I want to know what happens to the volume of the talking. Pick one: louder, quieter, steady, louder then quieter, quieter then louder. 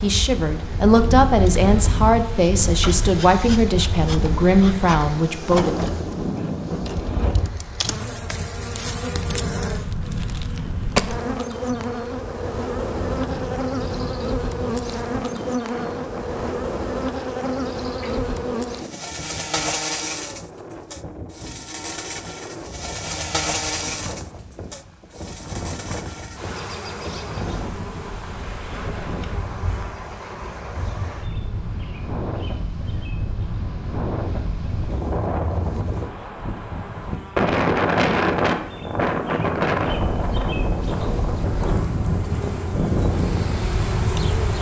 steady.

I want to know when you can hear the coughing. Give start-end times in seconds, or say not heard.
not heard.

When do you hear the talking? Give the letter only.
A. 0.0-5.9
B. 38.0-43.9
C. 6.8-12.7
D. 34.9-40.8
A.